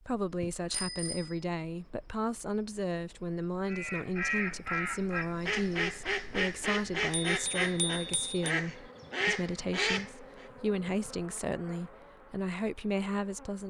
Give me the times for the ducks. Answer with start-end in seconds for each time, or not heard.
3.6-10.4.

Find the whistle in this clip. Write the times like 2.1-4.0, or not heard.
not heard.